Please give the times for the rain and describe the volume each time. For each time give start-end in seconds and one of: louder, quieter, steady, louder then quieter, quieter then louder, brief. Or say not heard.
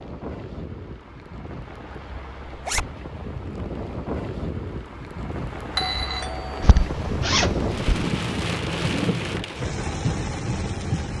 0.0-11.1 louder.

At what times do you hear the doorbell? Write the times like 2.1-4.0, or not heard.
5.7-6.7.